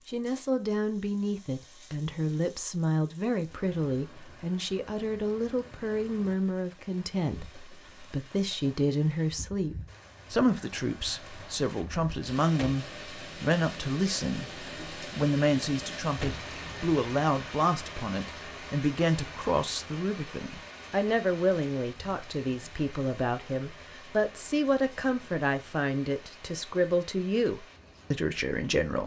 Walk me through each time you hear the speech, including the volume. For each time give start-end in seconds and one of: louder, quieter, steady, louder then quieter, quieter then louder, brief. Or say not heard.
0.1-29.0 steady.